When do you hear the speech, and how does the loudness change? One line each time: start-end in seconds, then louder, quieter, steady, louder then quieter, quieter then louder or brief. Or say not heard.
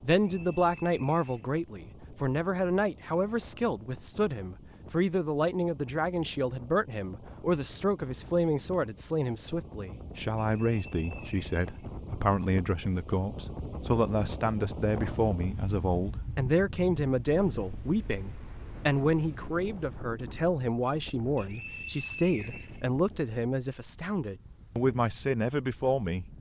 0.0-26.2 steady.